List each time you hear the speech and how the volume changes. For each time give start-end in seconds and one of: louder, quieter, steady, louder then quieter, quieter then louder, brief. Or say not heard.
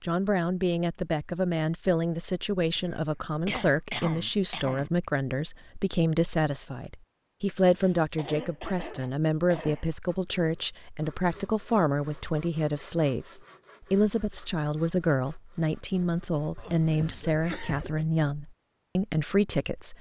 0.0-19.9 steady.